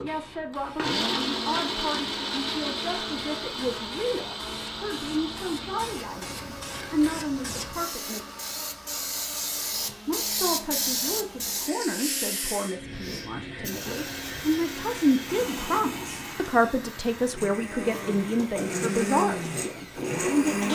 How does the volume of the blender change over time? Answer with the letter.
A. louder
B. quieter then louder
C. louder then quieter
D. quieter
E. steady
B.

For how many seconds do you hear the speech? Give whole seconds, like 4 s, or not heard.
19 s.